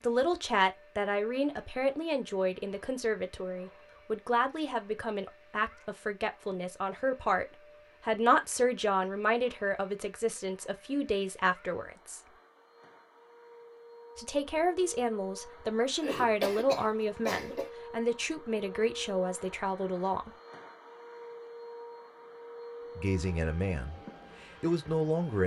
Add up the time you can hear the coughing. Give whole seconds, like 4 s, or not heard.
2 s.